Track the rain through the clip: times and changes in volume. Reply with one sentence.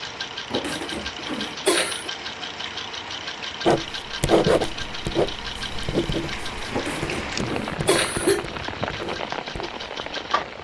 You can hear the rain from 0.0 to 10.5 s, getting louder.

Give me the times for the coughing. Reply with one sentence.
You can hear the coughing from 0.5 to 2.1 s and from 6.7 to 8.4 s.